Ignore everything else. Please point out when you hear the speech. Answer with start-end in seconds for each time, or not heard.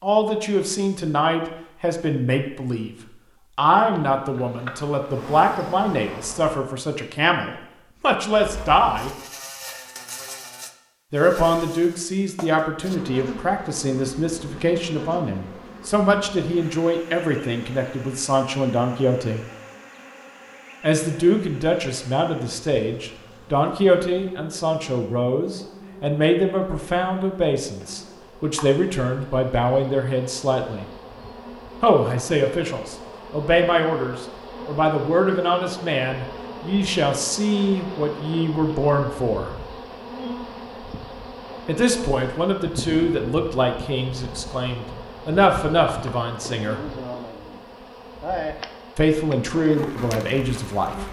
0.0-9.1, 11.1-19.4, 20.8-30.9, 31.8-39.5, 41.6-46.8, 49.0-51.0.